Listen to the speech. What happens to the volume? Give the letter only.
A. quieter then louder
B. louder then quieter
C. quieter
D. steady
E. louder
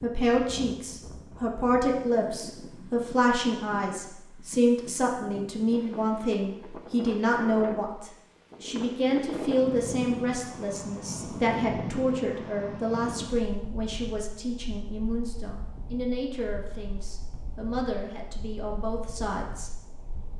C.